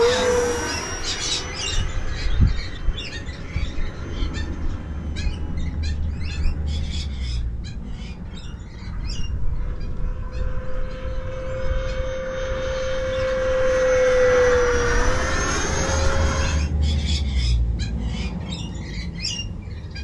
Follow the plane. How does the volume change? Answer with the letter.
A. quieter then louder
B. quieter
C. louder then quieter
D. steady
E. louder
A.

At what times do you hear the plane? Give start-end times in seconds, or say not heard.
0.0-16.7.